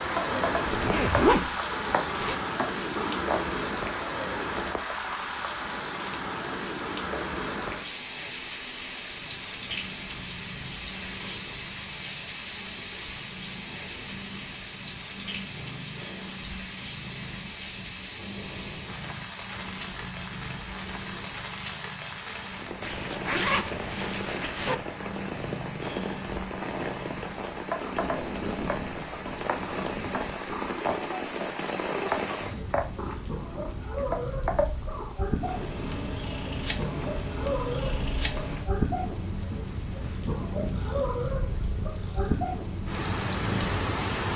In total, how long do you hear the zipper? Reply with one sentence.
You can hear the zipper for 4 seconds altogether.